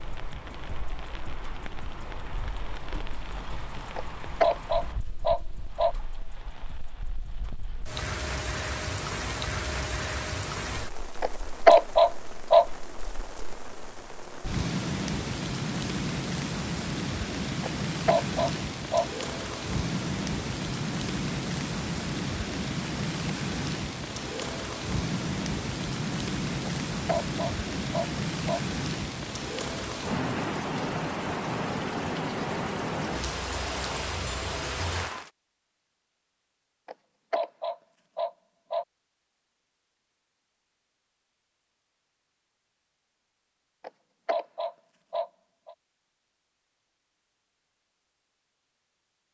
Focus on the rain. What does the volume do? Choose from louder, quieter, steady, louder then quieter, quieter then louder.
louder.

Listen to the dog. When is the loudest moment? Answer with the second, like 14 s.
12 s.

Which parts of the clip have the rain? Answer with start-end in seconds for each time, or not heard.
0.0-35.3.